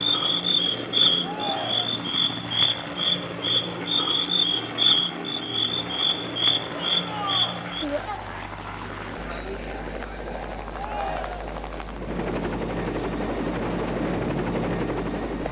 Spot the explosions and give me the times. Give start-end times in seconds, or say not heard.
not heard.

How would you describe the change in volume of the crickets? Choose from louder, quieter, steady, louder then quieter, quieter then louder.
steady.